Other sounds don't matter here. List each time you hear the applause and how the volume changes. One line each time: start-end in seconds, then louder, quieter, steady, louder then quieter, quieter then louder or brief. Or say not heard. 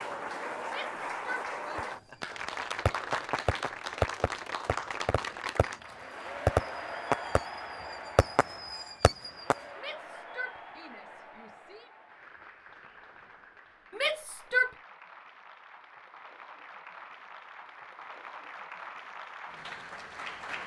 0.0-20.6 quieter then louder.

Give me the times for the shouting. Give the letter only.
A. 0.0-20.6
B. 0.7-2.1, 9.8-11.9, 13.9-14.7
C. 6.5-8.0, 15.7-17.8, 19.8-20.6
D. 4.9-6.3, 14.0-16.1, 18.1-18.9
B.